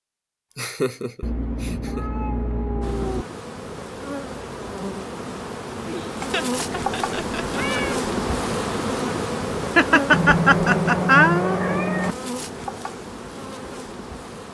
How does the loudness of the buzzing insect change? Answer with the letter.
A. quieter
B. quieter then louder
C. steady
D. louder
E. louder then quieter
E.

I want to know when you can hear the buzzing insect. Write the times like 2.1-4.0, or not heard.
2.8-14.4.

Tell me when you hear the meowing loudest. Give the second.
11 s.